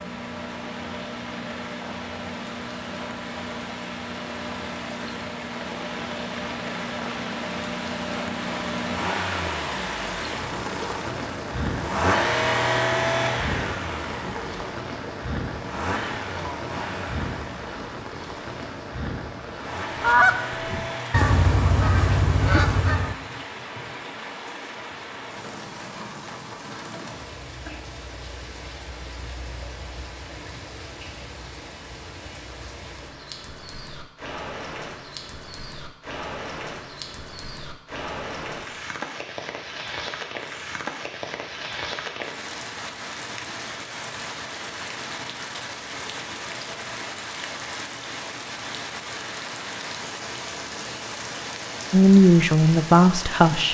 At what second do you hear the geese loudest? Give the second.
20 s.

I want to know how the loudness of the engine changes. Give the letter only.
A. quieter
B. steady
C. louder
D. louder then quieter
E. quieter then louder
D.